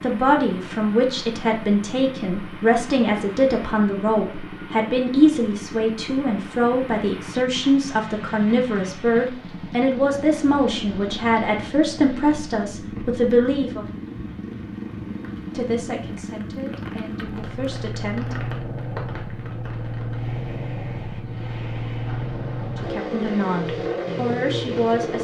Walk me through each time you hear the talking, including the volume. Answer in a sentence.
The talking can be heard from 0.0 to 13.8 s, at a steady volume; briefly from 15.5 to 18.4 s; and briefly from 22.6 to 25.1 s.